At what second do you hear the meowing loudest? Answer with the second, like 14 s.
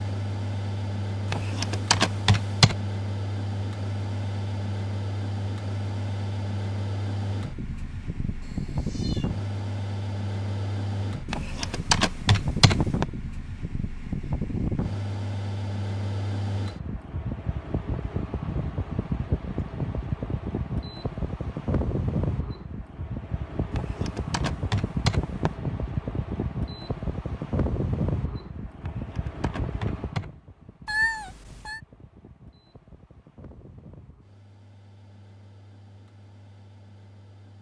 31 s.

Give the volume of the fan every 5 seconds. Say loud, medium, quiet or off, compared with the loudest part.
loud, loud, loud, loud, loud, loud, quiet, quiet.